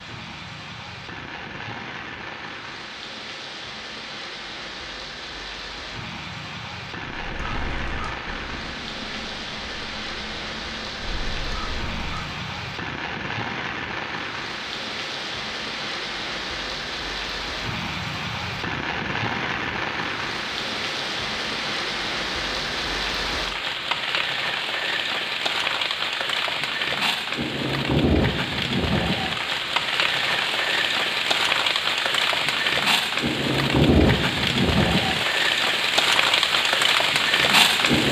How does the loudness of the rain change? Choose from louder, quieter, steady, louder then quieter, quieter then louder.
louder.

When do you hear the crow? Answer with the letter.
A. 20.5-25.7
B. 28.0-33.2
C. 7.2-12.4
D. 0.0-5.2
C.